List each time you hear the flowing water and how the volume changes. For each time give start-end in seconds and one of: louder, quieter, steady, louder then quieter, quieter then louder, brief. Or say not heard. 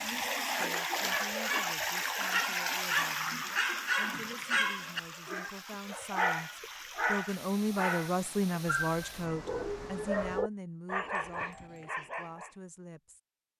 0.0-10.4 quieter.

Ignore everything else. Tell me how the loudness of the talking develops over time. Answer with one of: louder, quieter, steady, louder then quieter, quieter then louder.
louder then quieter.